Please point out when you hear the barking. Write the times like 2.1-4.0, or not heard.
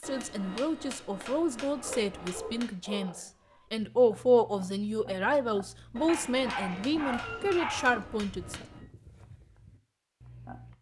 1.8-3.2, 6.0-8.1.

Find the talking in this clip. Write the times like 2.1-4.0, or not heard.
0.0-8.6.